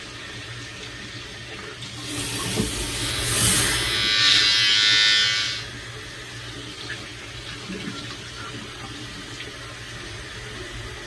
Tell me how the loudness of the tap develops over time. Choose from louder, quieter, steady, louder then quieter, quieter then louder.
louder then quieter.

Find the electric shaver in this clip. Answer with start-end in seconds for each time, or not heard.
2.9-5.7.